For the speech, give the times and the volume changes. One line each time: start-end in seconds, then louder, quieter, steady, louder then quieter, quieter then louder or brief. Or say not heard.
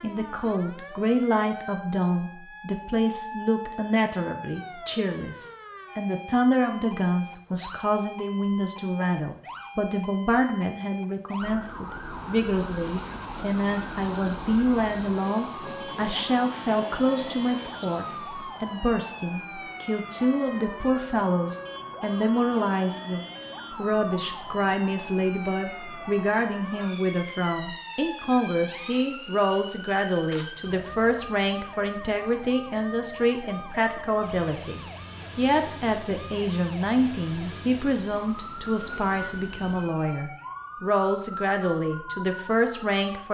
0.0-43.2 steady.